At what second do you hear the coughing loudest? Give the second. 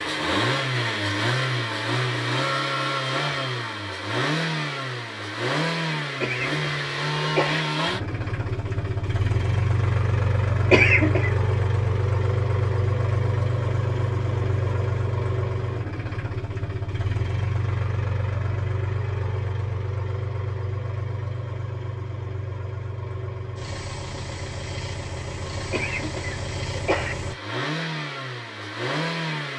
11 s.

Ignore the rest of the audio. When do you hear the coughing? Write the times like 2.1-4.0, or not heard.
6.2-7.7, 10.7-11.3, 25.7-27.1.